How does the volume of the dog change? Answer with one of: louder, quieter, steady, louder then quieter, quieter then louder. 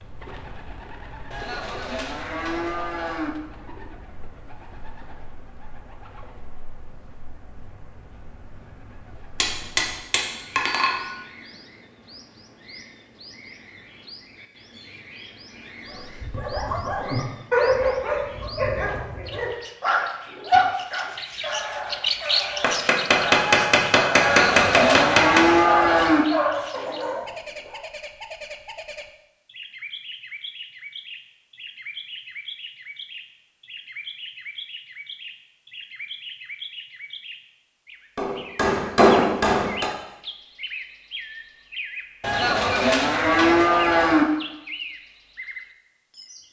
quieter then louder.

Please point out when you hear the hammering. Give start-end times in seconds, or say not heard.
9.4-11.1, 22.6-25.6, 38.1-39.9.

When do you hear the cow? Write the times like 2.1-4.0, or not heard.
1.3-3.3, 24.2-26.2, 42.2-44.2.